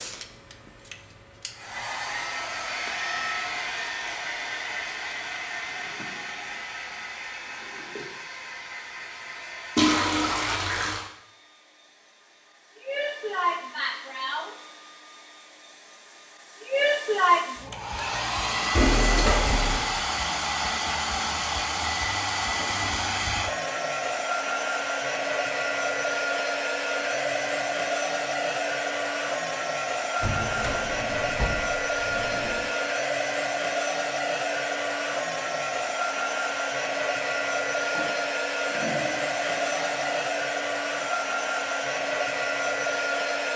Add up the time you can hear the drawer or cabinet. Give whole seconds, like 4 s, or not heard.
6 s.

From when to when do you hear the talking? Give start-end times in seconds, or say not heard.
not heard.